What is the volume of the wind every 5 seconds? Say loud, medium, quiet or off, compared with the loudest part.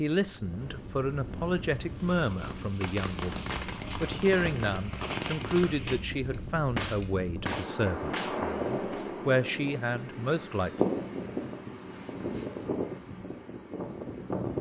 medium, loud, loud.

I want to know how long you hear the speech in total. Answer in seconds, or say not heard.
11 s.